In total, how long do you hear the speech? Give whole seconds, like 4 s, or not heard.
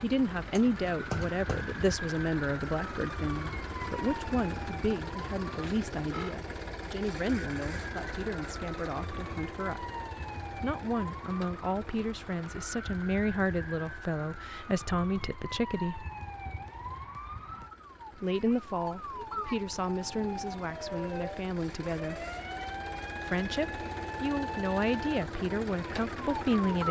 23 s.